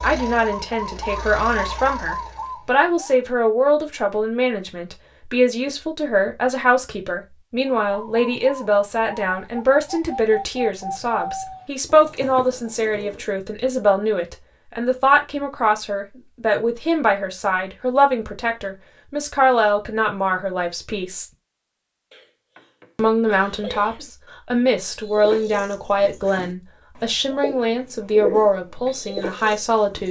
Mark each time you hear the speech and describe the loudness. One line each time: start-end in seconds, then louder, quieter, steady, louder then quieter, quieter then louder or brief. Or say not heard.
0.0-21.2 steady
22.9-30.0 steady.